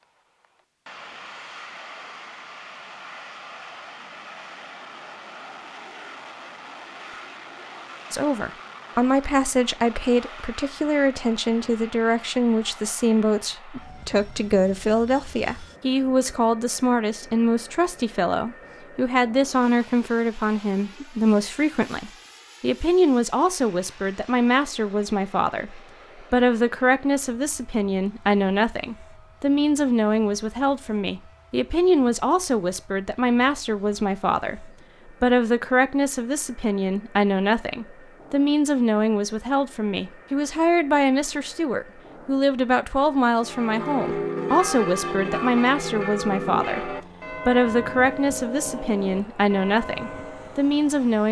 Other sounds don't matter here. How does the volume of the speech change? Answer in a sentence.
The volume of the speech stays about the same.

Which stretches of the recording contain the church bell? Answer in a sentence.
The church bell can be heard from 43.4 to 50.7 s.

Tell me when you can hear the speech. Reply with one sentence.
The speech can be heard from 8.1 to 51.2 s.